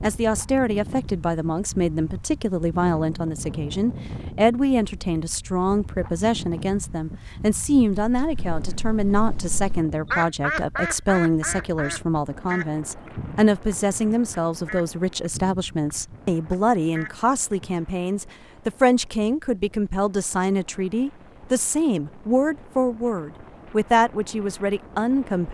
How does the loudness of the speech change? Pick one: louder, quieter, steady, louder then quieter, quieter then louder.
steady.